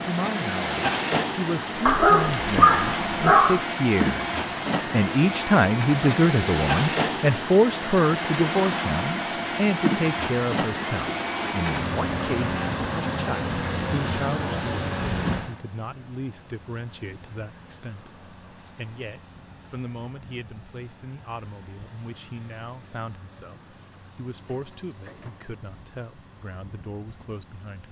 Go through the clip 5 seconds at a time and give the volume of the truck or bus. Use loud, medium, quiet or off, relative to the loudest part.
loud, loud, loud, medium, quiet, quiet.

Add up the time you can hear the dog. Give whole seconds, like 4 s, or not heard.
2 s.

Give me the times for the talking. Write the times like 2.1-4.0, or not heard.
0.0-27.8.